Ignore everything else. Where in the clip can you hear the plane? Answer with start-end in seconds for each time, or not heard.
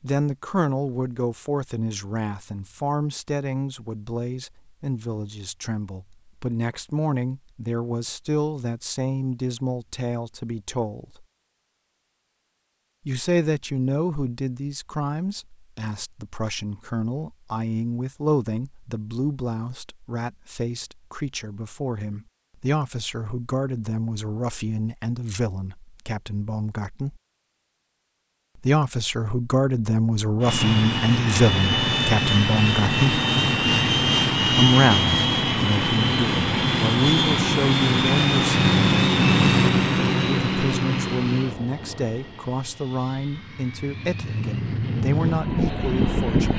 30.4-46.5.